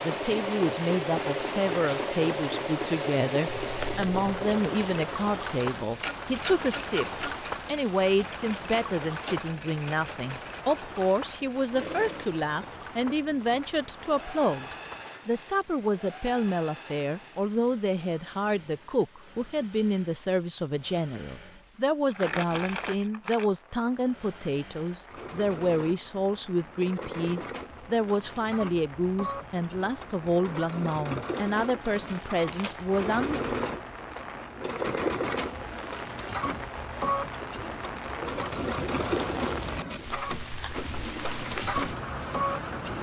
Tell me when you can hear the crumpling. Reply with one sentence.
The crumpling can be heard from 3.5 to 4.4 s, from 22.1 to 23.5 s and from 32.1 to 32.9 s.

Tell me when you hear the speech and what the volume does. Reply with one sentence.
You can hear the speech from 0.0 to 33.5 s, at a steady volume.